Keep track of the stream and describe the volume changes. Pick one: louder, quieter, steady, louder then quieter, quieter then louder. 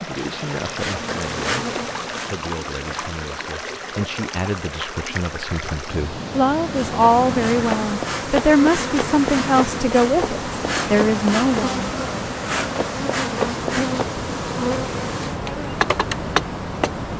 steady.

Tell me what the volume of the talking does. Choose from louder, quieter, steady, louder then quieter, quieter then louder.
louder.